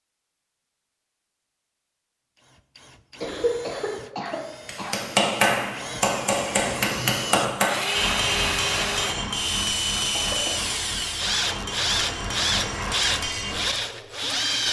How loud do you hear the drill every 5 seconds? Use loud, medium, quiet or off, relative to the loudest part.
quiet, loud, loud.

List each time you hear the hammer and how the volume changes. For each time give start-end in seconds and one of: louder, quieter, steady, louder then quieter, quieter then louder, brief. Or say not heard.
4.7-13.8 quieter.